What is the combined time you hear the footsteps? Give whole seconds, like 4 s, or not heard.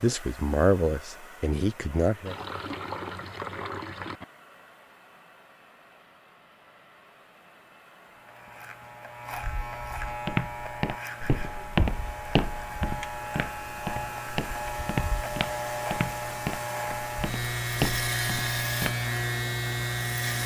9 s.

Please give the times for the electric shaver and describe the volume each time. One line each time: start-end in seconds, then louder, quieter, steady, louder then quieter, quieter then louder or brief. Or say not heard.
8.2-20.4 louder.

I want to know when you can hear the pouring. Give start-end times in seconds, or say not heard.
2.2-4.2.